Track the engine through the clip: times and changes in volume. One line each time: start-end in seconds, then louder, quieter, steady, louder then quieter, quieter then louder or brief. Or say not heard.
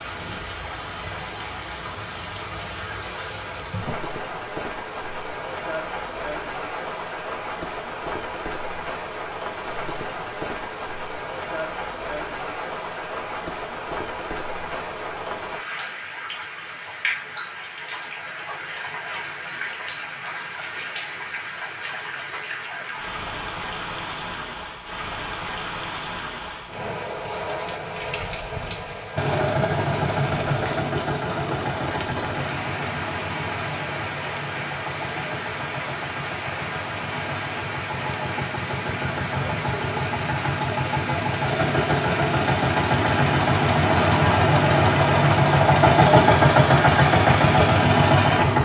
29.1-48.6 quieter then louder.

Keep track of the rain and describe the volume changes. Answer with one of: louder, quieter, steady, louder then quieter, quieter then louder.
steady.